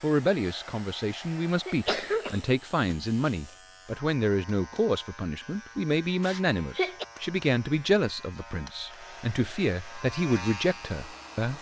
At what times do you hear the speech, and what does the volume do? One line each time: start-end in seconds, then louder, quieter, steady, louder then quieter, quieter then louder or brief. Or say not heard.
0.0-11.5 steady.